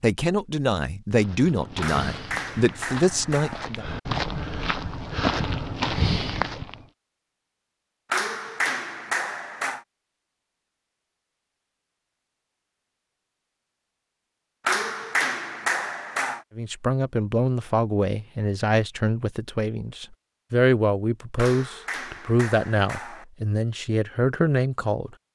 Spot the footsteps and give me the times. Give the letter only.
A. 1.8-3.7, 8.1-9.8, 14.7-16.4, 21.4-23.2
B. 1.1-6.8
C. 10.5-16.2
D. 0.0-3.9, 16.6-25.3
B.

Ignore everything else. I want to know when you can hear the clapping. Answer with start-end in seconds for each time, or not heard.
1.8-3.7, 8.1-9.8, 14.7-16.4, 21.4-23.2.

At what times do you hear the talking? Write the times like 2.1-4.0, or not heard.
0.0-3.9, 16.6-25.3.